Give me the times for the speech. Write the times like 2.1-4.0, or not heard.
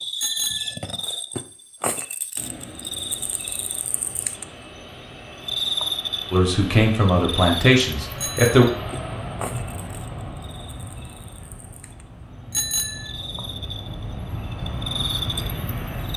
6.3-8.7.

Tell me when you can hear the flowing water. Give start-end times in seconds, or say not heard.
not heard.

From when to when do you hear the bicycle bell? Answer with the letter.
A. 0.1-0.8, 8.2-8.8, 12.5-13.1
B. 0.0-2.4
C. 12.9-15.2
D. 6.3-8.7
A.